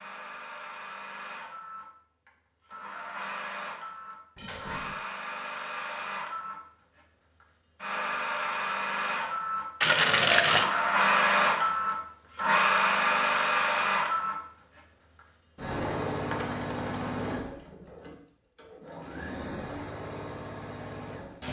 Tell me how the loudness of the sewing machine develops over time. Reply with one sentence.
The volume of the sewing machine goes up, then down.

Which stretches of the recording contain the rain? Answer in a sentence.
The rain can't be heard in this clip.